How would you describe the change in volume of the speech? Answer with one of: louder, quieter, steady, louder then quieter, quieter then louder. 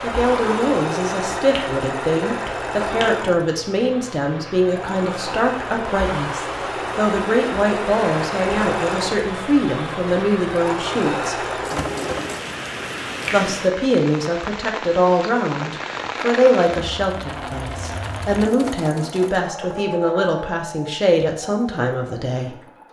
steady.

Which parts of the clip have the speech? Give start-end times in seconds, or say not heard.
0.0-11.5, 13.3-22.6.